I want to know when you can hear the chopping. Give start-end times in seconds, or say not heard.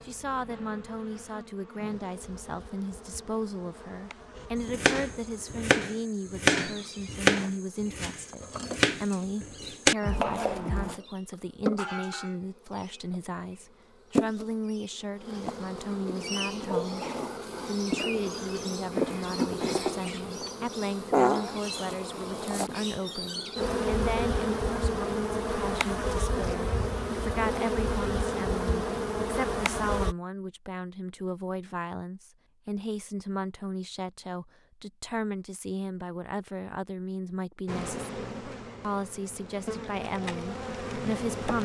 4.5-10.9.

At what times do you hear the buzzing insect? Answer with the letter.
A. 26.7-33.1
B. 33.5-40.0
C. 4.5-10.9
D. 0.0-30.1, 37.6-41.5
D.